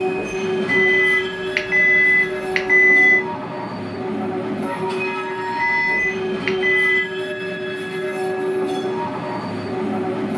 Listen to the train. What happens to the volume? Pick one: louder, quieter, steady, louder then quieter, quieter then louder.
steady.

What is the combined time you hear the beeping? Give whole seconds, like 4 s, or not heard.
4 s.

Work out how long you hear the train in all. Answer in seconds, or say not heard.
10 s.